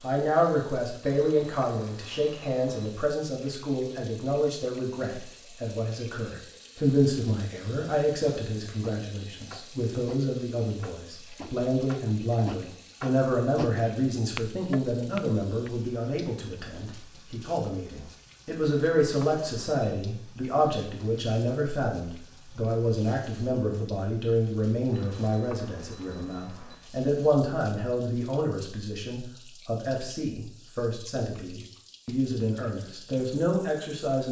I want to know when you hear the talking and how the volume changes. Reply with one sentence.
The talking can be heard from 0.0 to 34.2 s, at a steady volume.